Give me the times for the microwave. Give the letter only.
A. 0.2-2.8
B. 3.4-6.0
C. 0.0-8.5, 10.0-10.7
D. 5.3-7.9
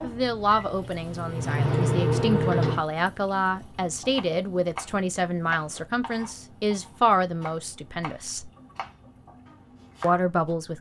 A.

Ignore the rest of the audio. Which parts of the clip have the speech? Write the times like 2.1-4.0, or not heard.
0.0-8.5, 10.0-10.7.